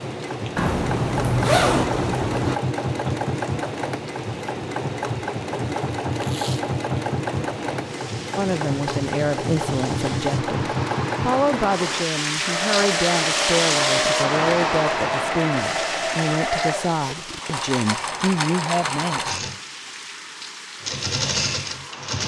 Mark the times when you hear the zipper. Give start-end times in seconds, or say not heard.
0.6-2.6.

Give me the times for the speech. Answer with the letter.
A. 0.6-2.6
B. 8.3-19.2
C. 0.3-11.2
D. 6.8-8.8
B.